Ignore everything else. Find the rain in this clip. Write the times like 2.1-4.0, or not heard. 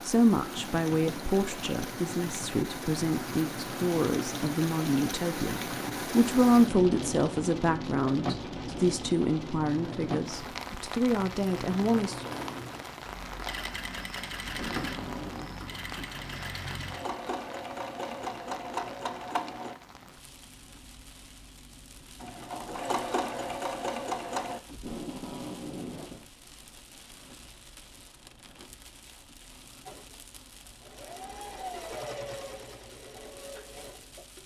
0.0-34.4.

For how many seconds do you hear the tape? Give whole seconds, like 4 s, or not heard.
3 s.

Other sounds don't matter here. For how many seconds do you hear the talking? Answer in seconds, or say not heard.
12 s.